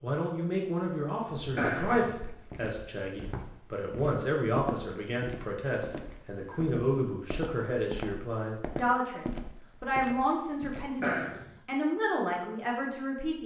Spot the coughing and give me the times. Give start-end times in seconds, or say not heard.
1.6-2.3, 11.0-11.5.